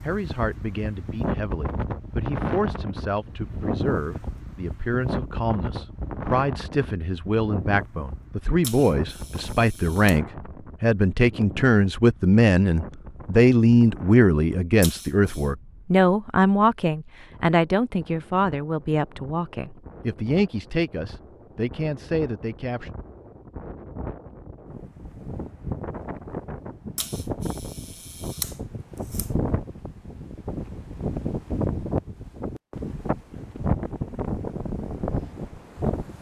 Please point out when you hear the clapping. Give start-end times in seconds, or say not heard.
not heard.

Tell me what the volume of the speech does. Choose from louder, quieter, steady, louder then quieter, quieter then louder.
louder then quieter.